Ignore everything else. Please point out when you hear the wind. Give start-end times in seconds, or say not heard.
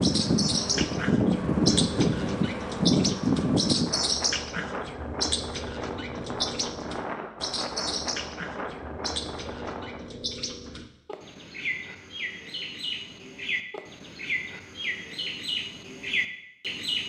0.0-10.0.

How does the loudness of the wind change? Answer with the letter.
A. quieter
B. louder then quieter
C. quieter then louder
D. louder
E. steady
A.